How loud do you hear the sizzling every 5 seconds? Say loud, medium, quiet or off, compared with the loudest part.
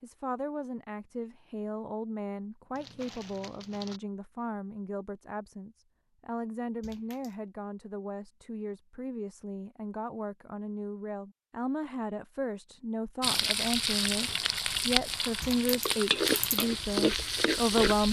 off, off, loud, loud.